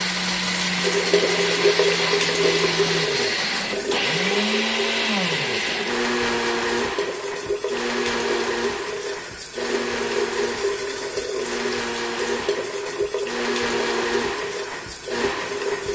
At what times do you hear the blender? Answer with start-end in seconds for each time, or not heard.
0.0-15.9.